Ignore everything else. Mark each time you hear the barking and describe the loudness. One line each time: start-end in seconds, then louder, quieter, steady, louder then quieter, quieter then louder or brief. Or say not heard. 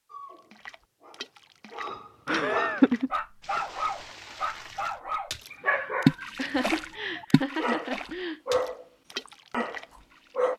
0.1-10.5 louder.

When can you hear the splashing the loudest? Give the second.
6 s.